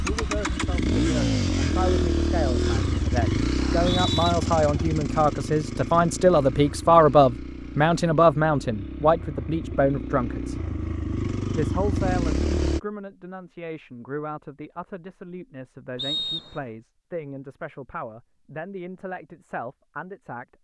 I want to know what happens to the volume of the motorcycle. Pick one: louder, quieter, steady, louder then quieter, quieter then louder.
quieter then louder.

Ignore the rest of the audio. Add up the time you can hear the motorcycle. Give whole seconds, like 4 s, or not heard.
13 s.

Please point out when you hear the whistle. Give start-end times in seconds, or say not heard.
3.5-4.3, 15.9-16.6.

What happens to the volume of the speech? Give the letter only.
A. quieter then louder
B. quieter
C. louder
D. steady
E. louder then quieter
E.